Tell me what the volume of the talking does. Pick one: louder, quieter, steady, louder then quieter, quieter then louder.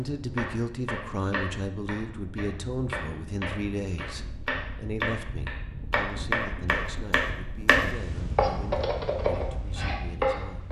quieter.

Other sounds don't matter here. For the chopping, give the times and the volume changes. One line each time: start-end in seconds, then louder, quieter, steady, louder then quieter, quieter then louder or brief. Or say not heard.
0.3-10.6 louder.